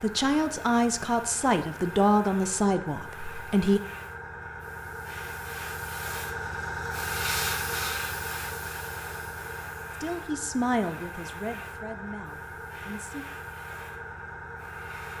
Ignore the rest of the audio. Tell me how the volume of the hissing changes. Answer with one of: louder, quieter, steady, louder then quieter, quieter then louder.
louder then quieter.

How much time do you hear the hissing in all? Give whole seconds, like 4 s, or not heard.
15 s.